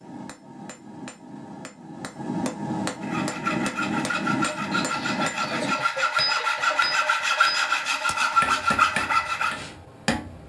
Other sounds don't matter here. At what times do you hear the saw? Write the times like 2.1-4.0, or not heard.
3.0-9.7.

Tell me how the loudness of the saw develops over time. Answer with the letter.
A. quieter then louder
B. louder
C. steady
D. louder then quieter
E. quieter
B.